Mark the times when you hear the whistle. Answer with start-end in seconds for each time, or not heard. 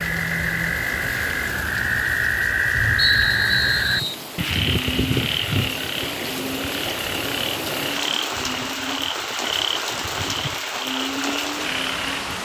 3.0-4.2.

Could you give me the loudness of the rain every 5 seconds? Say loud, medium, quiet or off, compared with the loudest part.
medium, loud, loud.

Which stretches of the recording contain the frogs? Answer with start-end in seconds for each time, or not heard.
0.0-12.4.